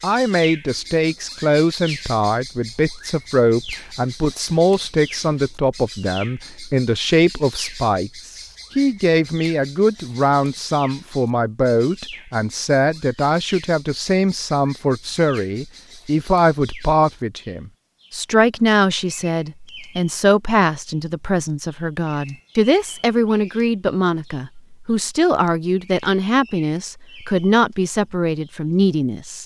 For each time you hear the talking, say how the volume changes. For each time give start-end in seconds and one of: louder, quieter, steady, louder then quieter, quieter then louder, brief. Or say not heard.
0.0-29.4 steady.